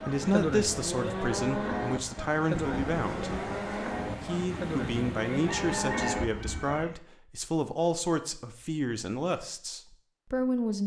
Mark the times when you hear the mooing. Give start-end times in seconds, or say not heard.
0.0-7.0.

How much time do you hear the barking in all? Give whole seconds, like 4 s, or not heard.
not heard.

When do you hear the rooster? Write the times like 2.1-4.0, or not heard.
5.4-6.9.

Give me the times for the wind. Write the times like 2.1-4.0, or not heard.
0.0-6.8.